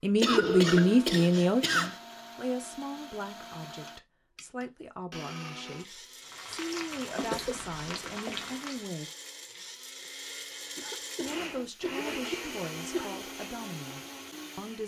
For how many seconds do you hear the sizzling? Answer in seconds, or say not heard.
3 s.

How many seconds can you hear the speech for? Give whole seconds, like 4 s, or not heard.
13 s.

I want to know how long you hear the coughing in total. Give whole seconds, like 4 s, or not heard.
5 s.